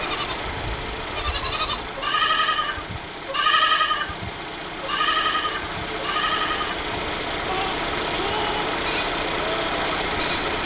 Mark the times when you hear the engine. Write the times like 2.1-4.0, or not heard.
0.0-10.6.